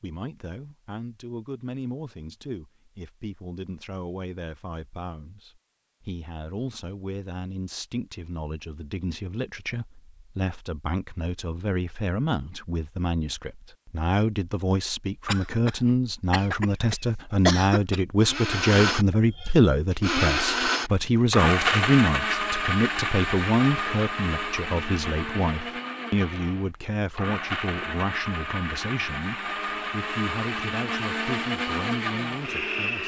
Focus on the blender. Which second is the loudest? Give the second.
22 s.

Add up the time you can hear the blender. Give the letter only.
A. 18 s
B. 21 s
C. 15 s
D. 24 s
C.